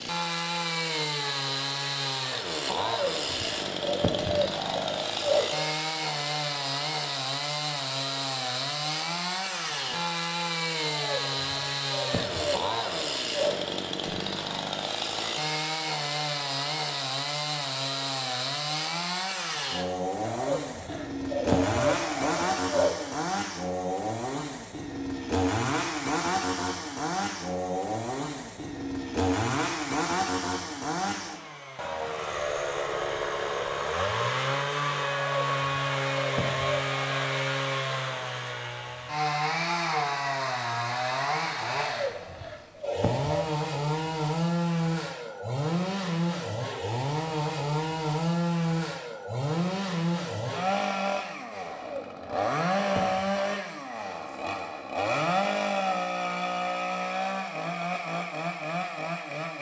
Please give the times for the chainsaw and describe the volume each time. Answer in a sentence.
You can hear the chainsaw from 0.0 to 59.5 s, at a steady volume.